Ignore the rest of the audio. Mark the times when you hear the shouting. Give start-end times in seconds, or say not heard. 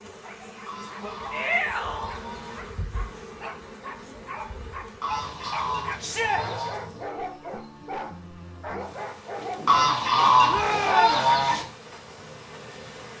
1.3-2.1, 6.0-6.4, 10.4-11.2.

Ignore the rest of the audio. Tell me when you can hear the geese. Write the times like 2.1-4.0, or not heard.
0.7-2.6, 5.0-6.8, 9.7-11.7.